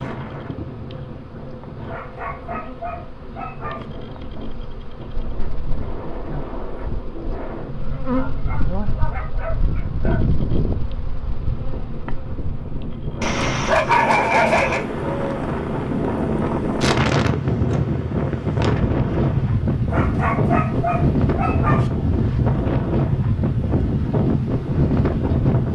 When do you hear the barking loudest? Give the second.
14 s.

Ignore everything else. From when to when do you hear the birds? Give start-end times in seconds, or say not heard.
not heard.